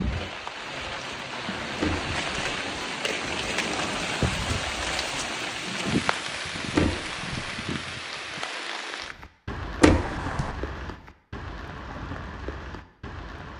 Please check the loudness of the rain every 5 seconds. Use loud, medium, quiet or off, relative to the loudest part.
loud, loud, medium.